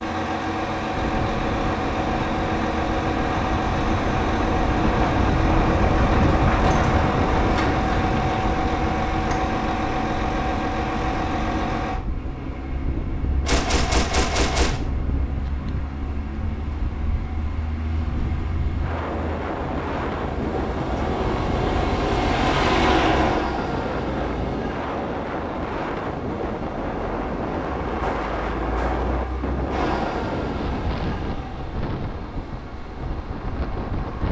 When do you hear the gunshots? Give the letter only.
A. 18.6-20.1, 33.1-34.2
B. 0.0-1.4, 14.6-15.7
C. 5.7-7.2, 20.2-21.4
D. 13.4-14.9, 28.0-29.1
D.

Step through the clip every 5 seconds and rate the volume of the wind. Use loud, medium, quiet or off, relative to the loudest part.
loud, loud, medium, medium, loud, loud, medium.